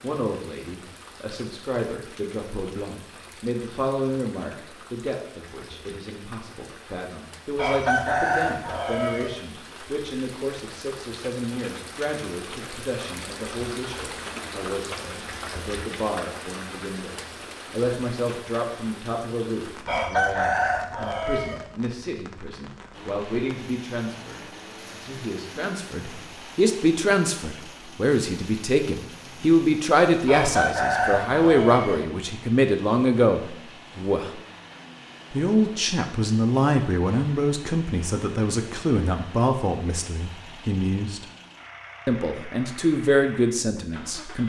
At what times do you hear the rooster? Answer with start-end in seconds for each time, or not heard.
7.5-9.3, 19.9-21.6, 30.2-32.0.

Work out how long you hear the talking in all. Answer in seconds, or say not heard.
43 s.